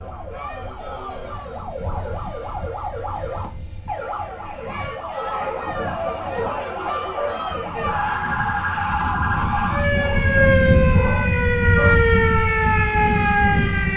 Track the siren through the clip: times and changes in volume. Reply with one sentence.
The siren can be heard from 0.0 to 13.9 s, getting louder.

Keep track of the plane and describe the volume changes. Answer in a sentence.
The volume of the plane goes up.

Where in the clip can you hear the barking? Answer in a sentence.
The barking can be heard from 0.8 to 2.2 s, from 5.3 to 7.3 s and from 9.9 to 11.9 s.